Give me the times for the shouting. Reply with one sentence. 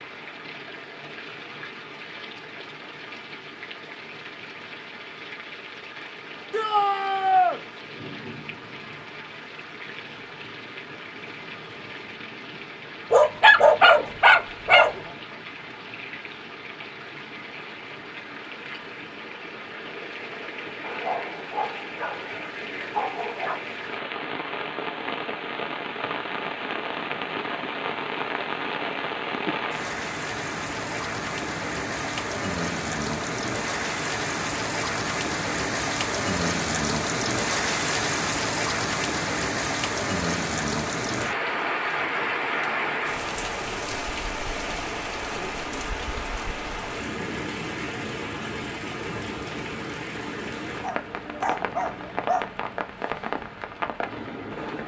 You can hear the shouting from 6.5 to 7.6 s.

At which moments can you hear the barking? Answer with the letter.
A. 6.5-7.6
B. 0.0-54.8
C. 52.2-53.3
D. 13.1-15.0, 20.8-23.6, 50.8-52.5
D.